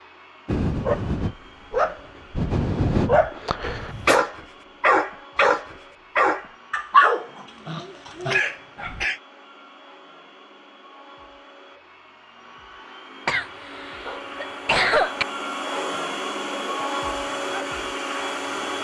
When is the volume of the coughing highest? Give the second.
15 s.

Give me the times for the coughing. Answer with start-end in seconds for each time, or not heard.
3.6-4.2, 8.3-9.2, 13.2-15.2.